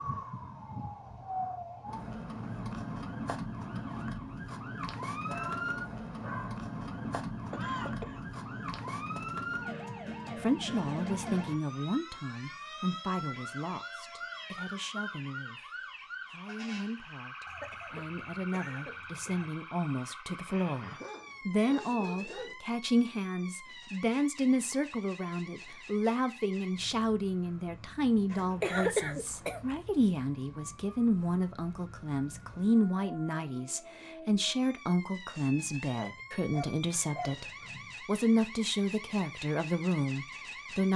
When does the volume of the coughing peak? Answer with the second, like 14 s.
29 s.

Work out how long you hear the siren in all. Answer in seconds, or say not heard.
41 s.